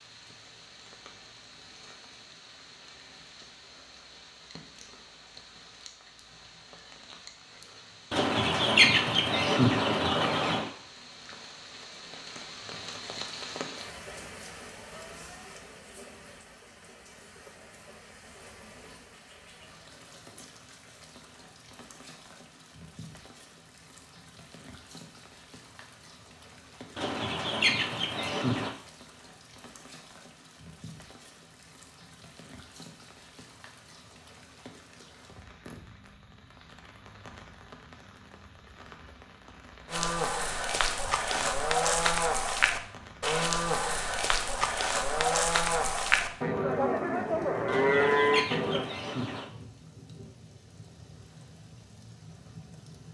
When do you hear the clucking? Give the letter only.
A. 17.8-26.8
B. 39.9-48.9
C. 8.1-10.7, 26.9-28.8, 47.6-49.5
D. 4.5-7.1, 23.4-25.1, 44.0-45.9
C.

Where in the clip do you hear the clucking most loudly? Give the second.
9 s.